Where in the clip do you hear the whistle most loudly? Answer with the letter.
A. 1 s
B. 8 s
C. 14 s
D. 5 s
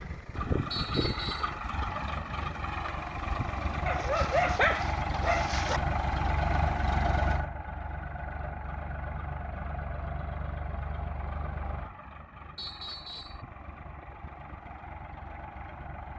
A.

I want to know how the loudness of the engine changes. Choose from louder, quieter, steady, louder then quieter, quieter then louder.
quieter.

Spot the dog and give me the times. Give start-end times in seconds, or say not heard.
3.9-5.8.